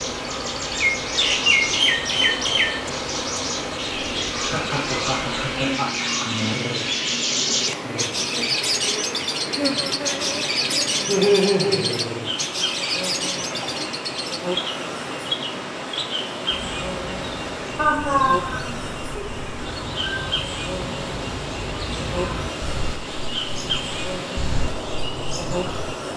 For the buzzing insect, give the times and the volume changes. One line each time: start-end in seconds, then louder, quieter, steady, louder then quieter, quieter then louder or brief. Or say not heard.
0.0-26.1 steady.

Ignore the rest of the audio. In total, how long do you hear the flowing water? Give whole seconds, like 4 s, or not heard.
26 s.